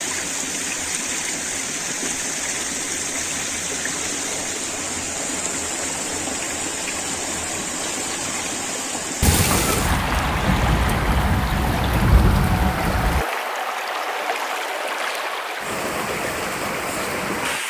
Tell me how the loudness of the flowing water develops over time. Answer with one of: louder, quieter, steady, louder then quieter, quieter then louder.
steady.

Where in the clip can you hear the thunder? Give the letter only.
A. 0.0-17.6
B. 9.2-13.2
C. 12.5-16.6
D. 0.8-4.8
B.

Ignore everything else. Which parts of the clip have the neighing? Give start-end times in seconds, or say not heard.
not heard.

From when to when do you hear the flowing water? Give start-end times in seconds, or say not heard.
0.0-17.6.